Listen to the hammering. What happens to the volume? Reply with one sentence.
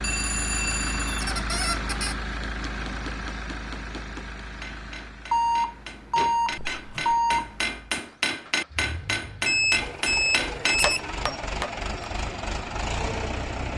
The loudness of the hammering goes up.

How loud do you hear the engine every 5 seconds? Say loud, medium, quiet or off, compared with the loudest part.
loud, medium, loud.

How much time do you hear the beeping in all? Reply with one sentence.
The beeping can be heard for 5 seconds in total.